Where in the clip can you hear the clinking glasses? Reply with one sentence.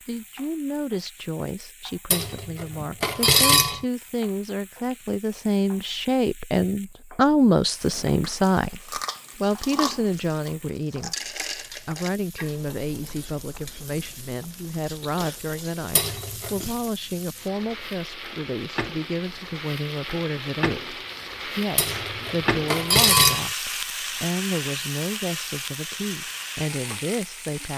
You can hear the clinking glasses from 2.1 to 3.9 s, from 15.9 to 16.7 s and from 21.8 to 23.5 s.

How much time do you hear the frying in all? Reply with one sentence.
The frying can be heard for 28 seconds in total.